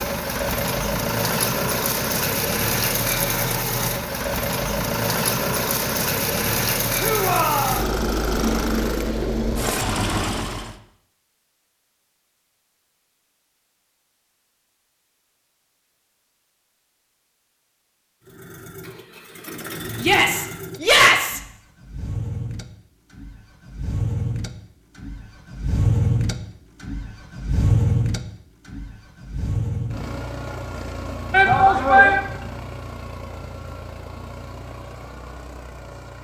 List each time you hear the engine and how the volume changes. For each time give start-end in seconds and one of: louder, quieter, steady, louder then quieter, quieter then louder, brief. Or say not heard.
0.0-10.8 steady
18.2-36.1 louder then quieter.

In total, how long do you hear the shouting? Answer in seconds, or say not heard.
3 s.